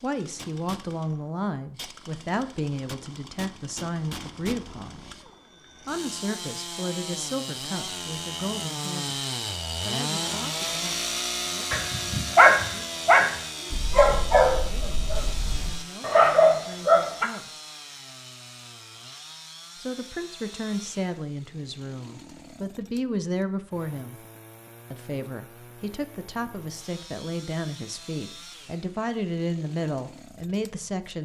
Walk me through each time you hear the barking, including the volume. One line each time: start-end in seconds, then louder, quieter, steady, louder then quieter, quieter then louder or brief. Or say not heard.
11.7-17.3 quieter then louder.